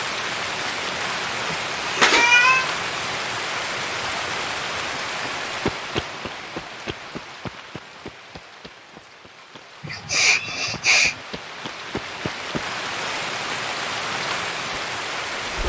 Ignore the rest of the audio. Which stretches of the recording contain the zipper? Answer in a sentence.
You can't hear the zipper here.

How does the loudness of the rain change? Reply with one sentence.
The loudness of the rain goes down, then up.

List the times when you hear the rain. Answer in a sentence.
The rain can be heard from 0.0 to 15.6 s.